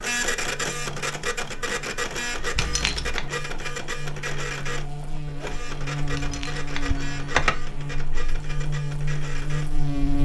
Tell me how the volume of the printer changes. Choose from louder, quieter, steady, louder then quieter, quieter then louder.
quieter.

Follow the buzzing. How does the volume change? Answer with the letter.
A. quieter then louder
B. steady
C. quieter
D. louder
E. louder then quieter
D.